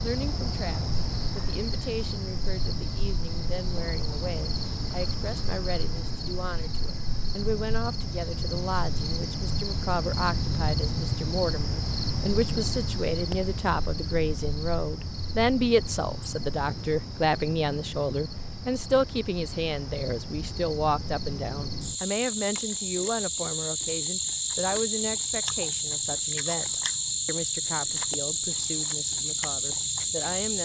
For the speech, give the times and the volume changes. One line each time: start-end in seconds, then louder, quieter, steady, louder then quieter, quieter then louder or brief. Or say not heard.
0.0-30.6 louder then quieter.